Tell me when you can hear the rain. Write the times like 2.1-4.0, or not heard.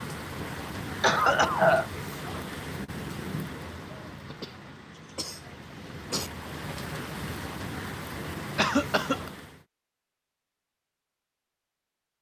0.0-9.7.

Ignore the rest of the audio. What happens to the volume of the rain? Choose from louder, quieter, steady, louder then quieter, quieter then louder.
quieter then louder.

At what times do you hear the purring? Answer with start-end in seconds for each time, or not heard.
not heard.